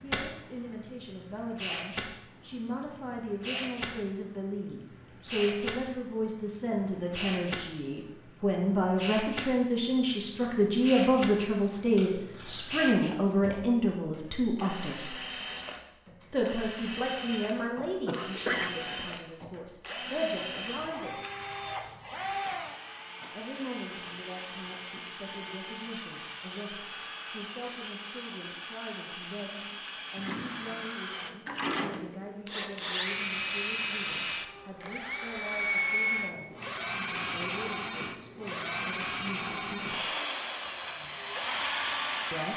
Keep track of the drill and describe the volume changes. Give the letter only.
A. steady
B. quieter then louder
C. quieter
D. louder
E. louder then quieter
D.